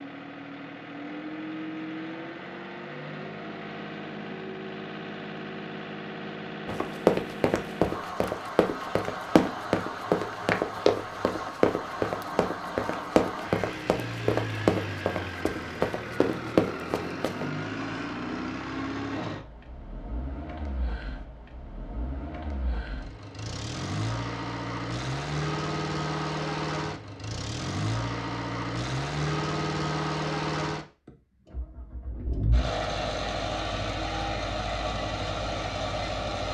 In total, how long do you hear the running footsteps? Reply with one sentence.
You can hear the running footsteps for 11 seconds altogether.